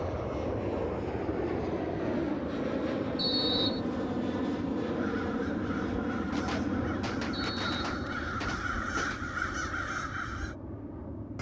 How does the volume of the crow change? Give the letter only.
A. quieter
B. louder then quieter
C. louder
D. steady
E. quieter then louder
C.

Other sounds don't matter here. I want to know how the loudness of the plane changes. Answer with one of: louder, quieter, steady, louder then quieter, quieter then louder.
quieter.